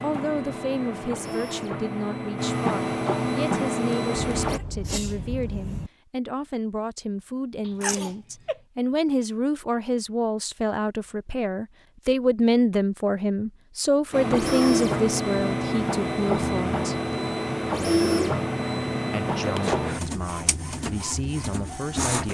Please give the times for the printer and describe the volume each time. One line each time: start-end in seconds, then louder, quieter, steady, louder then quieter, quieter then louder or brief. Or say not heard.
0.0-4.6 louder
14.1-22.2 quieter.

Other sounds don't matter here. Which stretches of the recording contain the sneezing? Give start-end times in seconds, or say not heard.
4.4-5.9, 7.7-8.6, 19.4-19.9.